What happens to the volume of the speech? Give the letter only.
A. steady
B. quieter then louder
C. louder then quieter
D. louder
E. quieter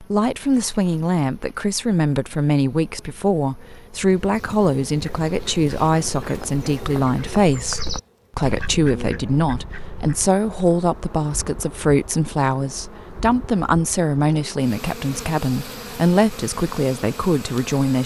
A.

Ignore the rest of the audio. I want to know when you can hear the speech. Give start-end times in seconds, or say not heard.
0.0-18.0.